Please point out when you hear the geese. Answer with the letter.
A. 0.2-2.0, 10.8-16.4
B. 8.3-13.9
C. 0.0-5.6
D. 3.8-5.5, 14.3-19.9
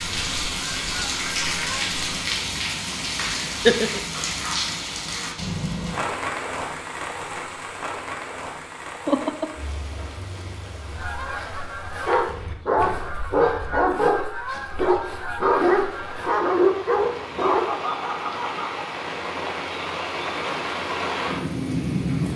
A.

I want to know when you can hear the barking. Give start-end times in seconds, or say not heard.
12.1-17.6.